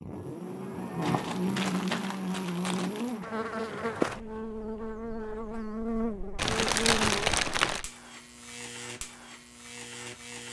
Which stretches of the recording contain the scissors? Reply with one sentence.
The scissors can't be heard in this clip.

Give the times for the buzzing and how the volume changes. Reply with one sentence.
The buzzing can be heard from 0.0 to 10.4 s, getting quieter.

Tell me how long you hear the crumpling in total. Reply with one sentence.
You can hear the crumpling for 4 seconds altogether.